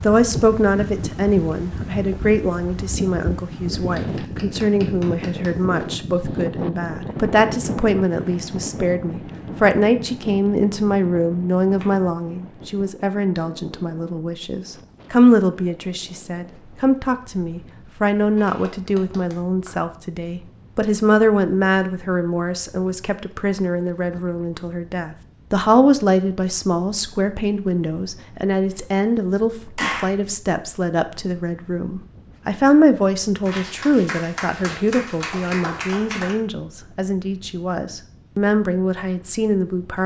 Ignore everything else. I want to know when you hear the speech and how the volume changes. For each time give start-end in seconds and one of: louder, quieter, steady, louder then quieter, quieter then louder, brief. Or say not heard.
0.0-40.0 steady.